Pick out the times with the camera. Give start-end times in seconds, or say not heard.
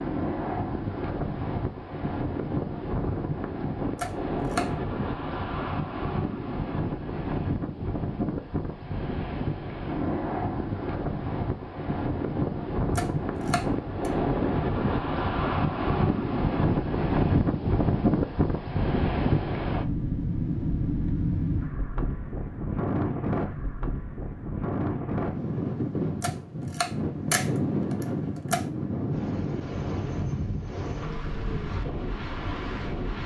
4.0-4.7, 12.9-14.1, 26.2-28.6.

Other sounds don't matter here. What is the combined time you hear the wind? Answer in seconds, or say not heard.
33 s.